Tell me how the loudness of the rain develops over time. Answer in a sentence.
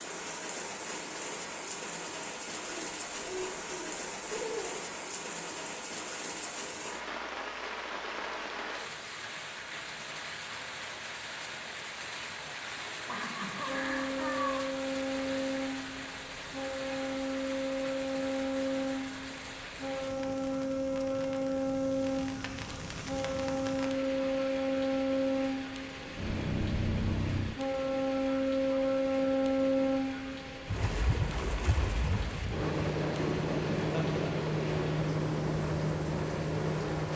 The loudness of the rain goes down.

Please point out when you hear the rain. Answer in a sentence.
You can hear the rain from 0.0 to 37.1 s.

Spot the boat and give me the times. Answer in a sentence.
You can hear the boat from 13.7 to 37.1 s.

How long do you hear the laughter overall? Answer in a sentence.
The laughter can be heard for 4 seconds in total.